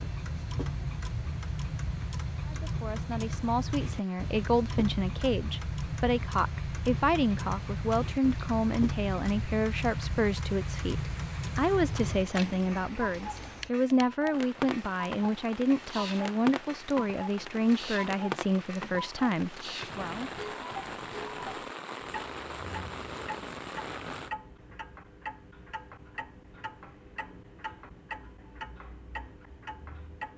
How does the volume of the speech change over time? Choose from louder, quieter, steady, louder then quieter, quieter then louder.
steady.